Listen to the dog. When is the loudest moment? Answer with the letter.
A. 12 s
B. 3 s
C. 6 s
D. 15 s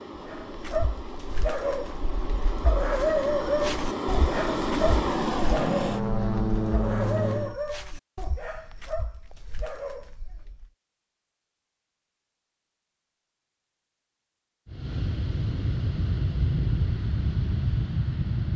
B.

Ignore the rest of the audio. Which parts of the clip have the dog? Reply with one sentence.
You can hear the dog from 0.1 to 10.7 s.